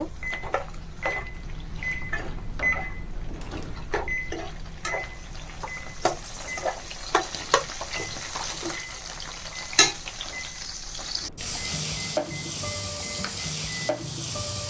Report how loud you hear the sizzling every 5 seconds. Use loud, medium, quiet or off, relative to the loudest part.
medium, loud, loud.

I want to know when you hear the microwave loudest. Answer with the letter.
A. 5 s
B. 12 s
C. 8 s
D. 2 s
D.